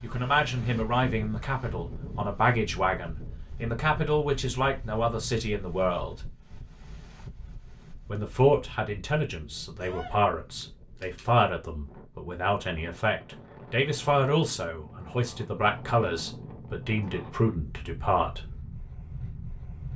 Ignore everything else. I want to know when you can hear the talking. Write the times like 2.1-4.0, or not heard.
0.0-6.2, 8.1-18.4.